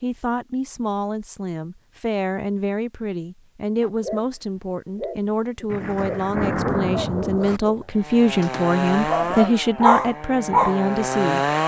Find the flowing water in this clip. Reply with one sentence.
The flowing water can't be heard in this clip.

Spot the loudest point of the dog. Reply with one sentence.
The loudest moment of the dog is at 10 seconds.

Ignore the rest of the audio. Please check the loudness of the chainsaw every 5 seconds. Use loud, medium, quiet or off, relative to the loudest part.
off, loud, loud.